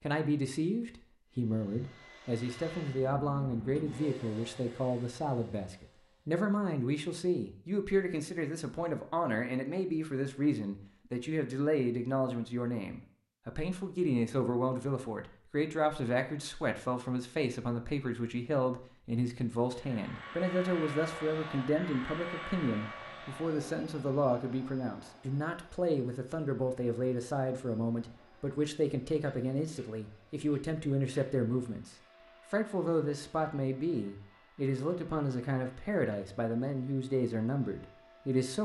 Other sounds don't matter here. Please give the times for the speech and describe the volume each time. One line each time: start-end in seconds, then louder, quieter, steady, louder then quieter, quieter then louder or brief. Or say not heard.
0.0-38.5 steady.